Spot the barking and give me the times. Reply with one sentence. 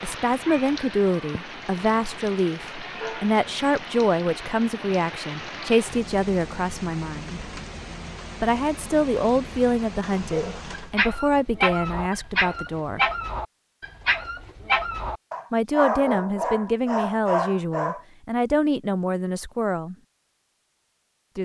The barking can be heard from 10.3 to 18.0 s.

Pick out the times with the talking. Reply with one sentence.
The talking can be heard from 0.0 to 7.5 s, from 8.4 to 13.1 s and from 15.5 to 19.9 s.